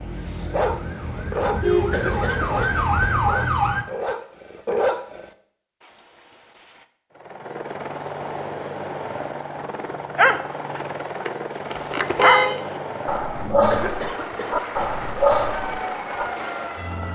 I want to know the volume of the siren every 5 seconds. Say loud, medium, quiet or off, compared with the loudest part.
loud, off, off, medium.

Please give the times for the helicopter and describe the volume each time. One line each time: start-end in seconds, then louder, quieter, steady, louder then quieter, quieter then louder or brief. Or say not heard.
7.1-17.1 steady.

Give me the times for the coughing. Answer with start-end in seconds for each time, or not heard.
1.9-3.1, 13.7-14.9.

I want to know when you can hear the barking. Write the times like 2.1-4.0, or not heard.
0.5-6.8, 10.2-16.2.